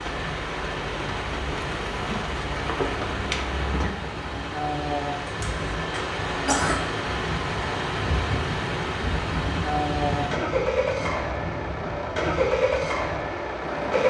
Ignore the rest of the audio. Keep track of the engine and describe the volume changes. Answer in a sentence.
The volume of the engine goes up.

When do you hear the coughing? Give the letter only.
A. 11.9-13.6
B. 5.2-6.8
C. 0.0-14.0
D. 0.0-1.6
B.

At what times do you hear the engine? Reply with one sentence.
The engine can be heard from 0.0 to 14.0 s.